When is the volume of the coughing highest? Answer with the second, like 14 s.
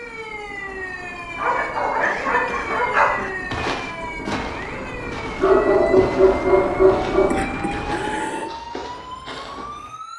8 s.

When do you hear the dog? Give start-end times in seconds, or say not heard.
1.4-3.1, 5.4-7.4.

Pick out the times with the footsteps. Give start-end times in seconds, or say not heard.
3.5-9.9.